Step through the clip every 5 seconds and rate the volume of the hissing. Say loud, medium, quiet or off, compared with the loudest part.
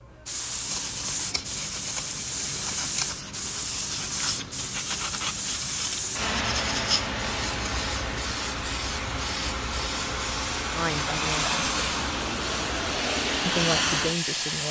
medium, loud, loud.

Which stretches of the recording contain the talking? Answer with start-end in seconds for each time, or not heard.
10.7-11.7, 13.4-14.6.